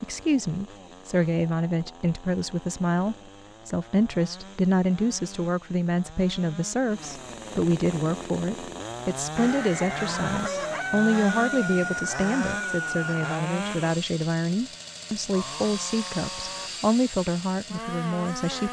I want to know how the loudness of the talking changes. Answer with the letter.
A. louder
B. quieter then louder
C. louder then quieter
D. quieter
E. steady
E.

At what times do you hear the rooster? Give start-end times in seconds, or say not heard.
9.3-13.4.